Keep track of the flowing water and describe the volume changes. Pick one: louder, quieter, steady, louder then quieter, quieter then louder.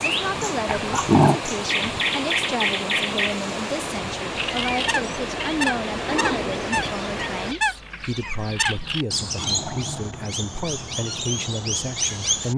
steady.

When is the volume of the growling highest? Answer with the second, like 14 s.
1 s.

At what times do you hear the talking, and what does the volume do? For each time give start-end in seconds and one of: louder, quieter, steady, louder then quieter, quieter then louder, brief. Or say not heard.
0.0-12.5 steady.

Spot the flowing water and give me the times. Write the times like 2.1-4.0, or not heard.
0.0-7.5.